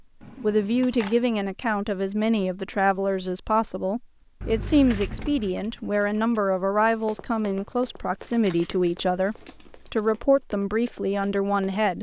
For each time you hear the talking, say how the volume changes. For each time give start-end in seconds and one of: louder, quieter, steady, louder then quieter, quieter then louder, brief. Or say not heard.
0.3-11.9 steady.